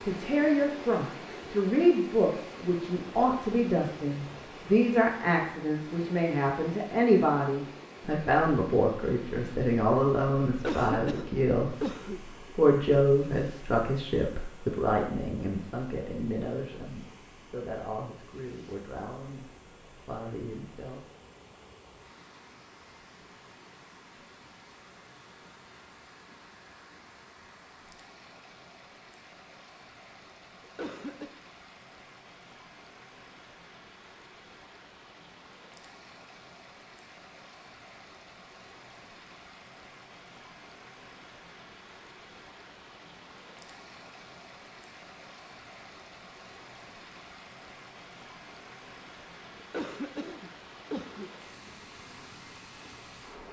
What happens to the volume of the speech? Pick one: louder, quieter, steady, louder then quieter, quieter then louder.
quieter.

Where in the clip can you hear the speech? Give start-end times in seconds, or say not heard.
0.0-11.9, 12.6-21.1.